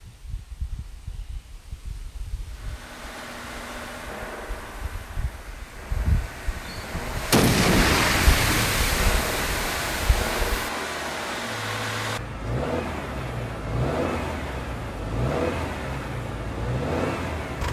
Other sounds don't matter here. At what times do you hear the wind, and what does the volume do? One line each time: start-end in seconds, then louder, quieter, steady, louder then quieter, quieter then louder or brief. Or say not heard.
0.0-10.7 louder.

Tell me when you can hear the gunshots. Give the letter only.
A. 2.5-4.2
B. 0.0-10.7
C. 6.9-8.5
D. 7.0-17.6
C.